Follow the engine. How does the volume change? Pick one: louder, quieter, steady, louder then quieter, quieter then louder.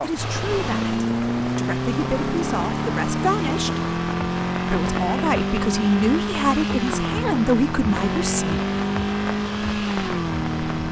steady.